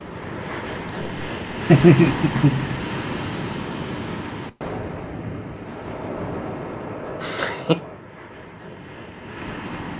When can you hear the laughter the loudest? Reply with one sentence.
The volume of the laughter peaks at 2 seconds.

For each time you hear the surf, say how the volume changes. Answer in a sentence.
The surf can be heard from 0.0 to 9.9 s, getting quieter.